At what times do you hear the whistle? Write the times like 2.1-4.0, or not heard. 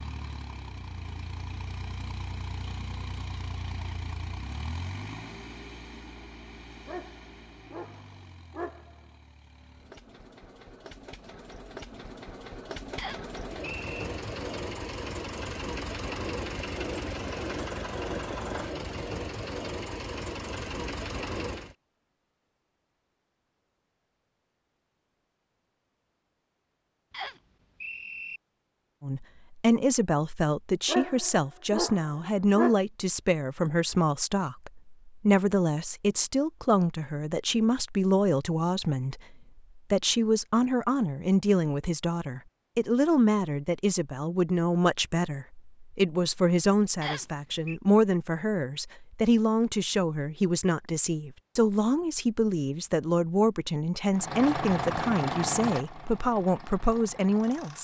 12.9-14.1, 27.1-28.4, 47.0-47.8.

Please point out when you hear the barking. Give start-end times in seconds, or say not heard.
6.8-9.0, 30.9-32.8.